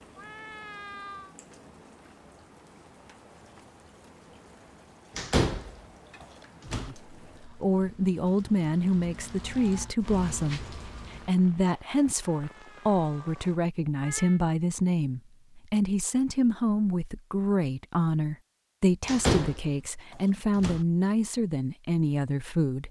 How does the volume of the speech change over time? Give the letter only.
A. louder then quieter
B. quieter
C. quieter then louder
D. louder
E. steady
E.